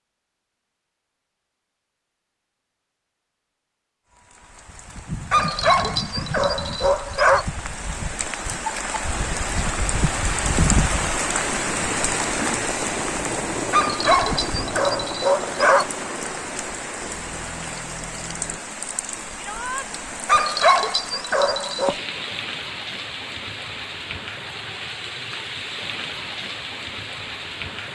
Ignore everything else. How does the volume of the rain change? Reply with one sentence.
The loudness of the rain goes up, then down.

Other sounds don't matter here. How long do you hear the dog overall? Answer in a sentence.
The dog can be heard for 6 seconds in total.